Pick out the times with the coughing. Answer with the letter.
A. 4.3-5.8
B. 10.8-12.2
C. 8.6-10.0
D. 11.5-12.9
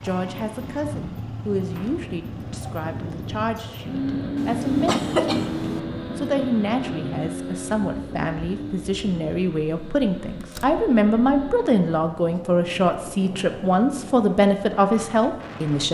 A.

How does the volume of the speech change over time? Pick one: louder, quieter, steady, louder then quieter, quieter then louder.
louder.